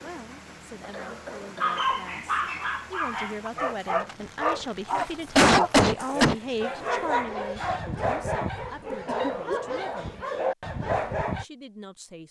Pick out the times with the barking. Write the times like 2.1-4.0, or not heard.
1.6-11.4.